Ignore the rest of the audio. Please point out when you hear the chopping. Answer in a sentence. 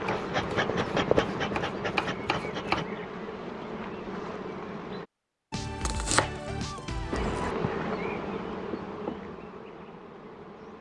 You can hear the chopping from 0.1 to 2.9 s and from 5.5 to 7.5 s.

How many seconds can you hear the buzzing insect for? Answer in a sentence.
The buzzing insect can be heard for 9 seconds in total.